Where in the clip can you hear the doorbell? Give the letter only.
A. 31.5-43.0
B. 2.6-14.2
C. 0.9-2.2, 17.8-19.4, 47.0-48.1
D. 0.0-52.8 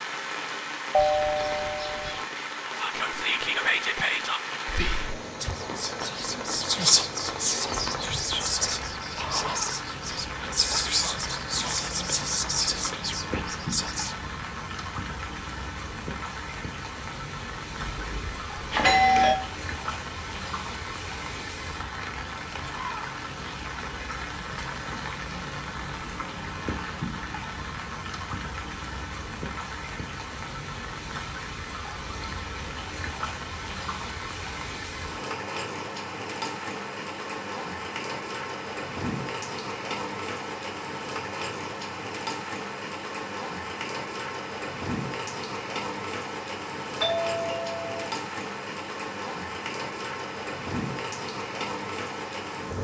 C.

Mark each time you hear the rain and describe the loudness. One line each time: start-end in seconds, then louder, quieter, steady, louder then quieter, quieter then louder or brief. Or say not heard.
0.0-52.8 steady.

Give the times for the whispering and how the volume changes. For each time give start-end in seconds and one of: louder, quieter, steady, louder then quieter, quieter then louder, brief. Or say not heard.
2.6-14.2 steady.